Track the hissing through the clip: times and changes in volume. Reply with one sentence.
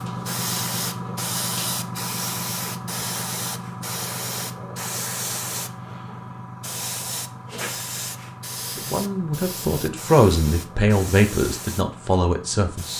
You can hear the hissing from 0.0 to 12.9 s, getting quieter.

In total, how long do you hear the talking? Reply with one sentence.
The talking can be heard for 4 seconds in total.